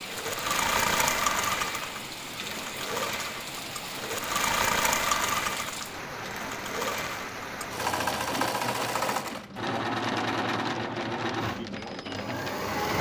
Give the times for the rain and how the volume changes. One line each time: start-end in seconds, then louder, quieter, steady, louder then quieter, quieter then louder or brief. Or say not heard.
0.0-12.9 steady.